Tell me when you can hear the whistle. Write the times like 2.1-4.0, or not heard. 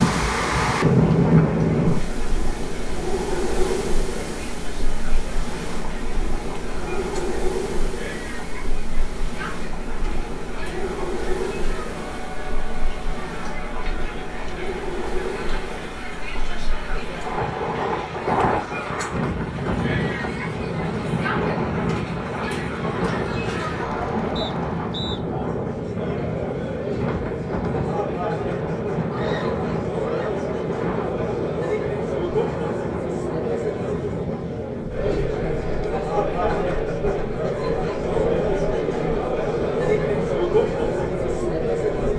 24.4-25.2.